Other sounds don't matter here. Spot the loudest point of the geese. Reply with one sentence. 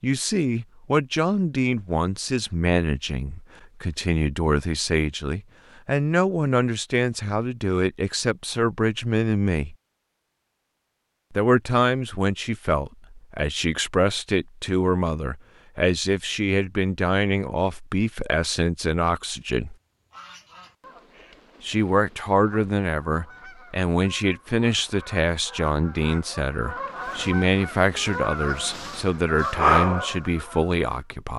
The loudest moment of the geese is at 30 seconds.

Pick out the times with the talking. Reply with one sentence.
The talking can be heard from 0.0 to 9.8 s, from 11.3 to 19.8 s and from 21.6 to 31.3 s.